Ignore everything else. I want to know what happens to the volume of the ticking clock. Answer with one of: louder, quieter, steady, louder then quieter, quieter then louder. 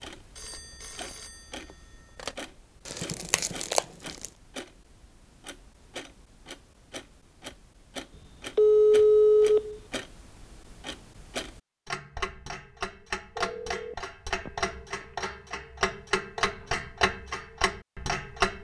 louder.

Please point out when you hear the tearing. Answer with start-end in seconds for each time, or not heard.
2.9-4.3.